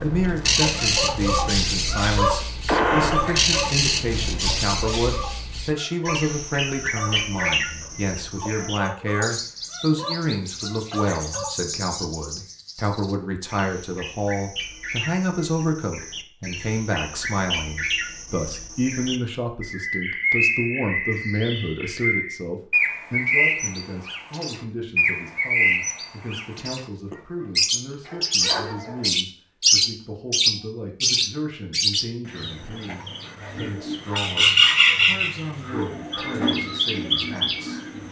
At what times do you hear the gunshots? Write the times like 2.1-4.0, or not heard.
2.6-3.2.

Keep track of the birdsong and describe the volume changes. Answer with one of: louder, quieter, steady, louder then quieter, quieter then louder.
quieter then louder.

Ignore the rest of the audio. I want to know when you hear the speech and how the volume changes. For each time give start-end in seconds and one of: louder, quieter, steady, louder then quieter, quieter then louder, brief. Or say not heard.
0.0-37.9 quieter.